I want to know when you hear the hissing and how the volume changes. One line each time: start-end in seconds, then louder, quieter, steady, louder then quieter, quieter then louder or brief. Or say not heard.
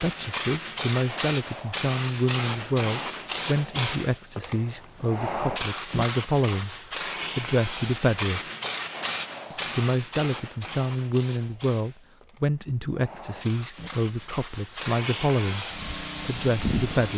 0.0-17.1 quieter then louder.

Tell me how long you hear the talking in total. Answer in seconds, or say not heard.
15 s.